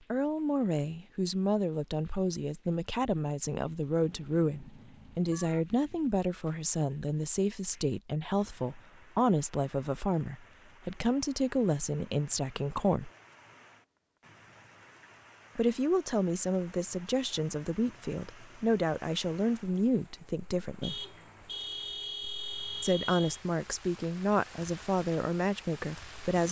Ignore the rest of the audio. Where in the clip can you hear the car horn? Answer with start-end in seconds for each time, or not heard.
4.0-5.7, 20.8-23.4.